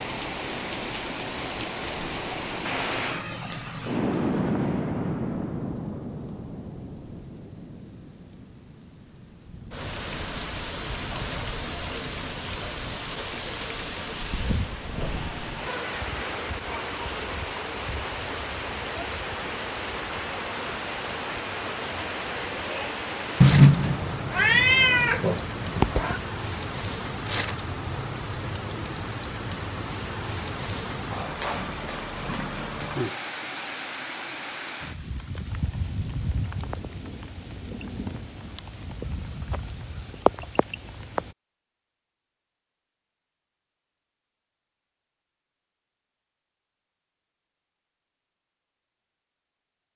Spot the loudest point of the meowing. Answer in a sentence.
The volume of the meowing peaks at 24 seconds.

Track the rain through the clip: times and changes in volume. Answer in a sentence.
The rain can be heard from 0.0 to 41.4 s, at a steady volume.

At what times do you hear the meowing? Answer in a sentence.
The meowing can be heard from 23.4 to 26.2 s.